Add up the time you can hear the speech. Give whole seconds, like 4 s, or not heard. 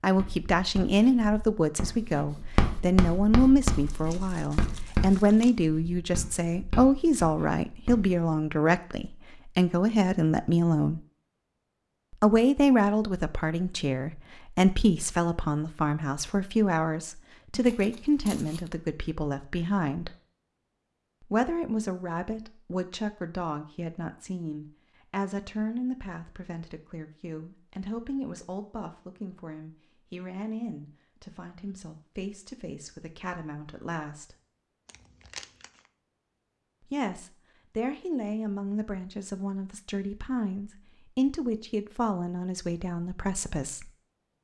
39 s.